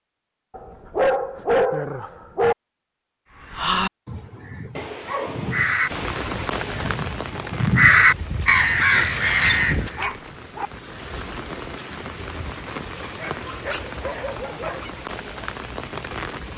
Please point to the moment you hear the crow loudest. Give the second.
8 s.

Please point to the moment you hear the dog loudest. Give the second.
2 s.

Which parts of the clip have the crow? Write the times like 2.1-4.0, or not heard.
3.4-10.1.